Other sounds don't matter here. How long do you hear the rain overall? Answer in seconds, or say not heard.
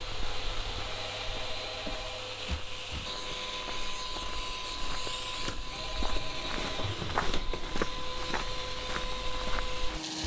not heard.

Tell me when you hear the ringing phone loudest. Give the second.
2 s.